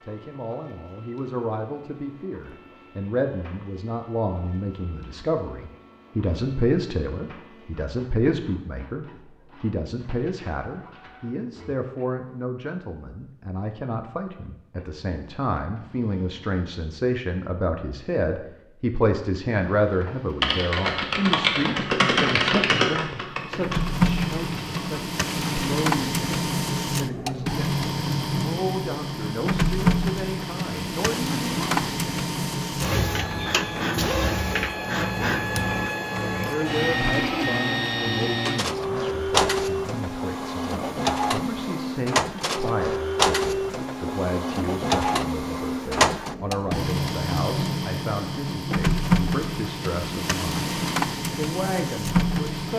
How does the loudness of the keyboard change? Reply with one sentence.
The volume of the keyboard goes down.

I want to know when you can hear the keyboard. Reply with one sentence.
You can hear the keyboard from 20.4 to 25.6 s.